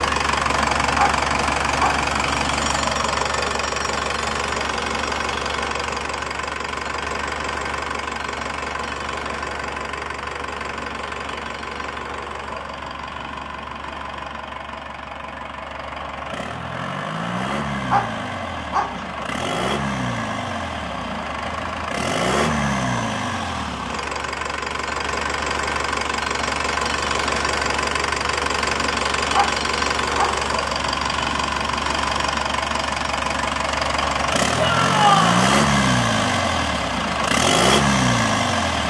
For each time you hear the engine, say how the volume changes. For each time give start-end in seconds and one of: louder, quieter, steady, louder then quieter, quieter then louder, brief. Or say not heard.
0.0-38.8 quieter then louder.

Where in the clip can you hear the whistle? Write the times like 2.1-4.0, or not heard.
not heard.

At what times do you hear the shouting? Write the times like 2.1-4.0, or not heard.
34.5-35.5.